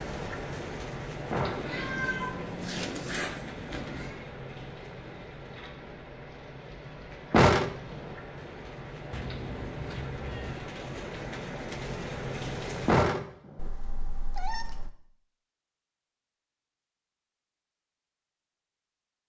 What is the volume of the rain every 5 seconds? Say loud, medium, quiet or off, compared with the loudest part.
loud, medium, loud, off.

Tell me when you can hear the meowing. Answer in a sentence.
You can hear the meowing from 1.6 to 4.2 s, from 9.1 to 10.6 s and from 13.6 to 14.9 s.